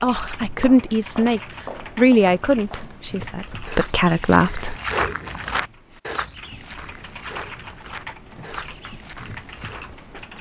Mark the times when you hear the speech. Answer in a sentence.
The speech can be heard from 0.0 to 4.8 s.